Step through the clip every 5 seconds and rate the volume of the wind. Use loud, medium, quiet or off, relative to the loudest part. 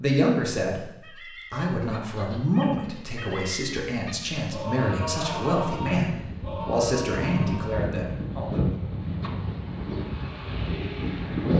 off, medium, loud.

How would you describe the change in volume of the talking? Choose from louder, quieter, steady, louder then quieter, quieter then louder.
steady.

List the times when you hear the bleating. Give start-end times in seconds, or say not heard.
1.0-8.0.